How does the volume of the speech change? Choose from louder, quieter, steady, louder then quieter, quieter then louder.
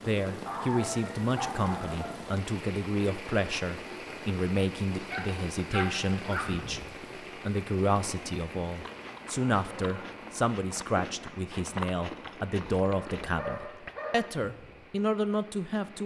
steady.